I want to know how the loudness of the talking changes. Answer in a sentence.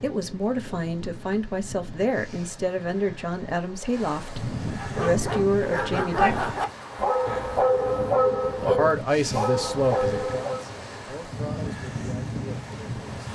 The loudness of the talking goes down.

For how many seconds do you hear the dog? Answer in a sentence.
You can hear the dog for 6 seconds altogether.